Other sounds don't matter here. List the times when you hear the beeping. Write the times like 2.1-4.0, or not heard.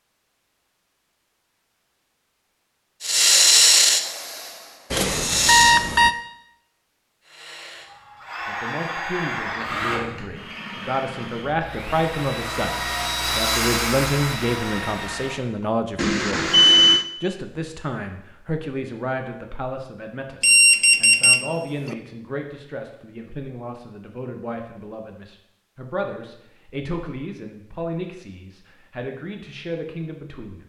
4.9-6.2, 15.9-17.1, 20.4-21.9.